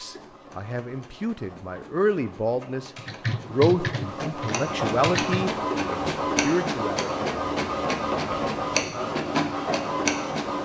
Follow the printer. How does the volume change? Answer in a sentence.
The volume of the printer goes up.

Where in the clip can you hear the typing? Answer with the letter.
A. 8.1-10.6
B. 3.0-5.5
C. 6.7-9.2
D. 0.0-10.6
B.